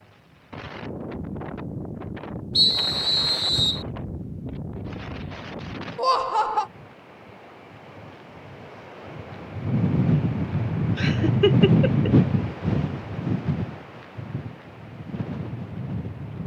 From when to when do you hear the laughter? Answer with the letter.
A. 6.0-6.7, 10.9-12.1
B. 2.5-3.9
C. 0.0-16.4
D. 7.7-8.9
A.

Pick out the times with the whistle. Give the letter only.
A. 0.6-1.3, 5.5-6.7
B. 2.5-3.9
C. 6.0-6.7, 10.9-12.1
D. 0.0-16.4
B.